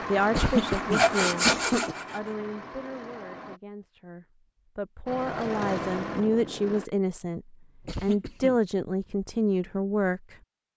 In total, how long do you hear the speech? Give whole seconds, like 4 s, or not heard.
10 s.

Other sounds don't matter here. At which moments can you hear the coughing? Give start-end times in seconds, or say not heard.
0.3-1.9, 7.8-8.6.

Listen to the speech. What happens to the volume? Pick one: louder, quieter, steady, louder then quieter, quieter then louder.
quieter then louder.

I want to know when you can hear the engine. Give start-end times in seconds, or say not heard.
0.0-3.6, 5.0-6.9.